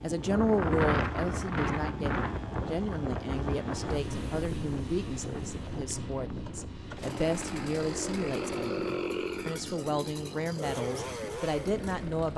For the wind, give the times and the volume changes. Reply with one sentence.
You can hear the wind from 0.0 to 12.3 s, getting quieter.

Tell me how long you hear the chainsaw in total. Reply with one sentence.
You can hear the chainsaw for 12 seconds altogether.